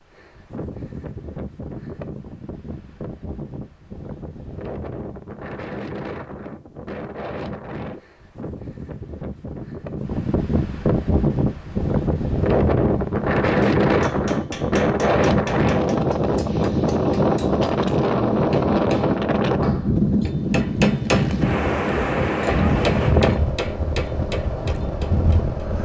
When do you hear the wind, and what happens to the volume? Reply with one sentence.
The wind can be heard from 0.0 to 25.8 s, getting louder.